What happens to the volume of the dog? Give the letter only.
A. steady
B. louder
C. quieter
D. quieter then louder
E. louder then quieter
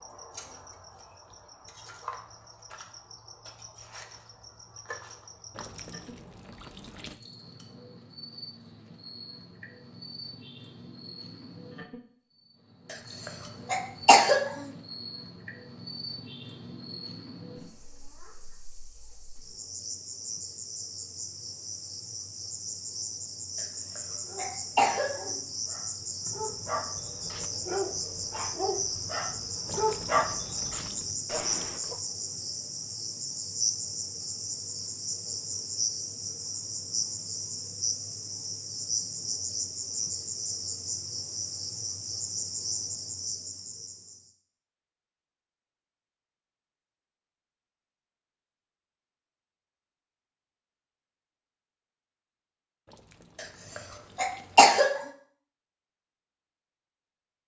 E.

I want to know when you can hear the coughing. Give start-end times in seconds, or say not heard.
12.9-14.7, 23.6-25.4, 53.4-54.9.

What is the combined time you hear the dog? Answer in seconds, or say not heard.
8 s.